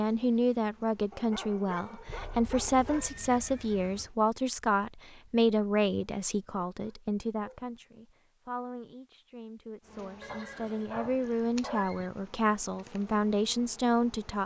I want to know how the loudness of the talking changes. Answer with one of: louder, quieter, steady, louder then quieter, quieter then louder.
quieter then louder.